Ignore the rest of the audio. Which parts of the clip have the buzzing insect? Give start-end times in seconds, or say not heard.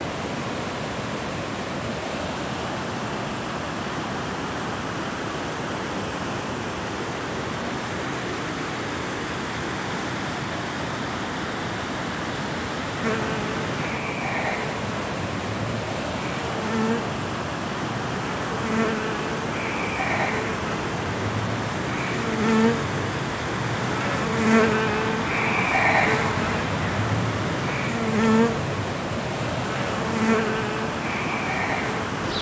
13.0-32.3.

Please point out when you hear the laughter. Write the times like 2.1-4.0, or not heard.
not heard.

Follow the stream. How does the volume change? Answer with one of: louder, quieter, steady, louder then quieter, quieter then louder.
steady.